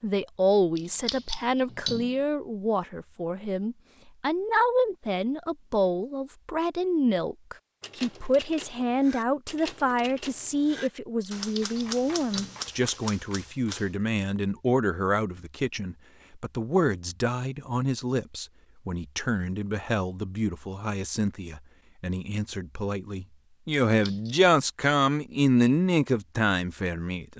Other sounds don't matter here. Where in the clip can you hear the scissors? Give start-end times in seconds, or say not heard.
0.8-2.1, 11.4-12.7, 23.9-24.4.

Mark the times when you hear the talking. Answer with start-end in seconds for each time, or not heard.
0.0-27.3.